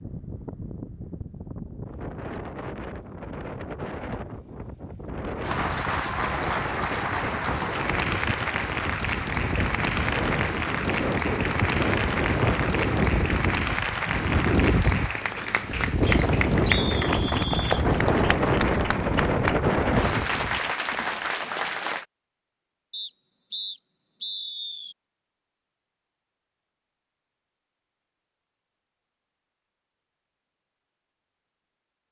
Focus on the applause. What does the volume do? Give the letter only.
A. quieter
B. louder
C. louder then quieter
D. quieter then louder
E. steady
E.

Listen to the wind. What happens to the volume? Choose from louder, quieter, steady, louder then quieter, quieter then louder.
louder.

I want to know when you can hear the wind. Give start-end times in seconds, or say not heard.
0.0-20.7.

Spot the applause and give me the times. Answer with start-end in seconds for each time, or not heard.
5.4-22.1.